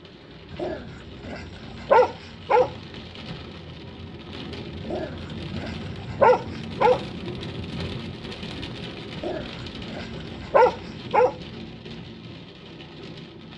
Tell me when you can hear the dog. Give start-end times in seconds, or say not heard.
0.5-2.7, 4.8-7.0, 9.2-11.3.